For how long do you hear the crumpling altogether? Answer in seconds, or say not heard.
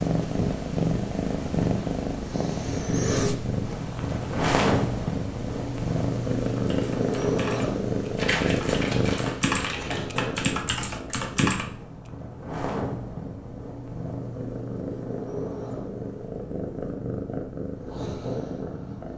2 s.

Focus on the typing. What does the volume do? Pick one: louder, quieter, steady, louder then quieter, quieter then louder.
louder.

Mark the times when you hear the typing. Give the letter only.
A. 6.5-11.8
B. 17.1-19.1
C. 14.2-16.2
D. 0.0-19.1
A.